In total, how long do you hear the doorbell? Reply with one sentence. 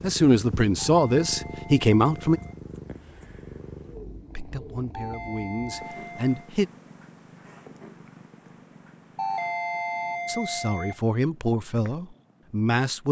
You can hear the doorbell for 5 seconds altogether.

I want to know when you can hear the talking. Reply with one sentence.
The talking can be heard from 0.0 to 2.4 s, from 4.3 to 6.7 s and from 10.2 to 13.0 s.